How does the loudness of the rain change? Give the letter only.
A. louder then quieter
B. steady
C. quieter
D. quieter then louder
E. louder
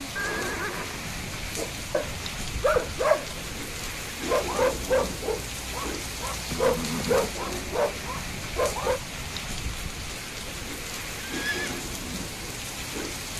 B.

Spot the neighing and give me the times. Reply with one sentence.
You can hear the neighing from 0.1 to 1.1 s, from 6.5 to 7.3 s and from 11.3 to 11.8 s.